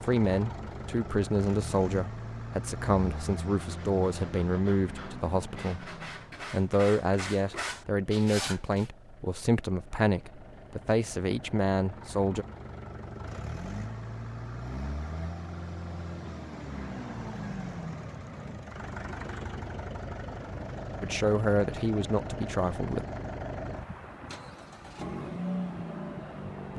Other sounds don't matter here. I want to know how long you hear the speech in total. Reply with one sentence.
The speech can be heard for 14 seconds in total.